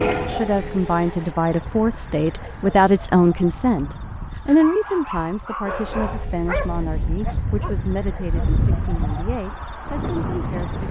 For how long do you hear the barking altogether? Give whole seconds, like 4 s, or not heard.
3 s.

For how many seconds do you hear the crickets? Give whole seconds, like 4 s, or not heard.
11 s.